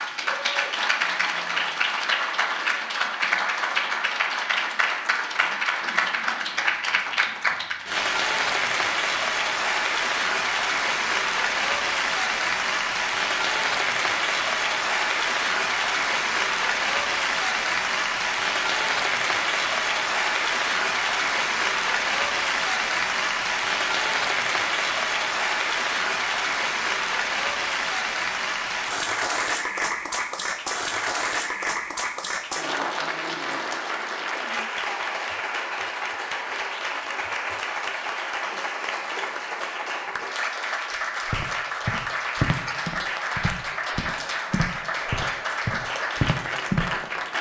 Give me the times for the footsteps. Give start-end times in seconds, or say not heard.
41.2-46.9.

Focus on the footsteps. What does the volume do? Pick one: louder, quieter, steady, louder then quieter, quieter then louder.
quieter then louder.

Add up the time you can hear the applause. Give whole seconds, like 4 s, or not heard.
47 s.